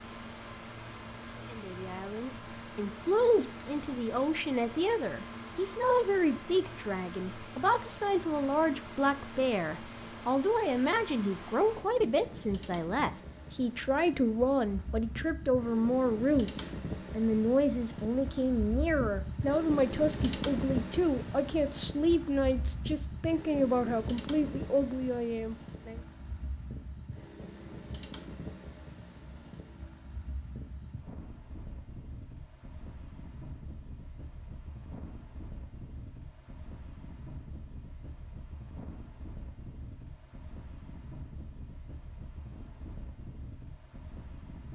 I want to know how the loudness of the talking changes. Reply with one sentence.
The loudness of the talking stays about the same.